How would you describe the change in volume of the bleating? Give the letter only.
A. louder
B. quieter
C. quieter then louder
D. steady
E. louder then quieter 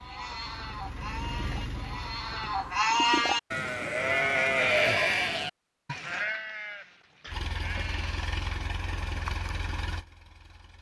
E.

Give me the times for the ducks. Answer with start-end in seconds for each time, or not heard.
not heard.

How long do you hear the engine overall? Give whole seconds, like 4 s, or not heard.
6 s.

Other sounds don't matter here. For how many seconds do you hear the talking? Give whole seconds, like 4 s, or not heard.
not heard.